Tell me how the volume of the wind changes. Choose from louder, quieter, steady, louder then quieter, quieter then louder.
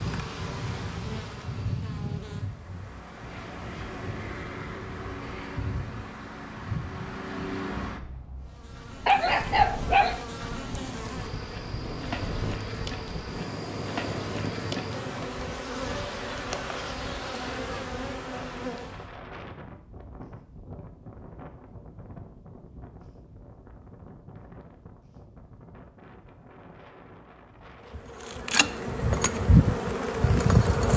quieter.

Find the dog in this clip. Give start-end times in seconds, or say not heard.
9.1-10.2.